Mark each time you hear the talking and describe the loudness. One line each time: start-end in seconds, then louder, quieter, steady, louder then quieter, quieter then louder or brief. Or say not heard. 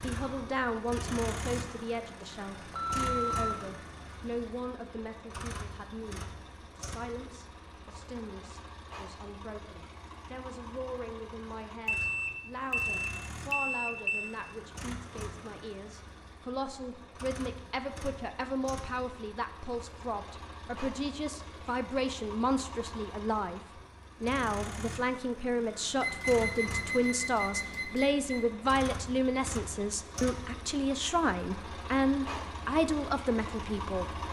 0.0-23.6 quieter then louder
24.2-34.0 steady.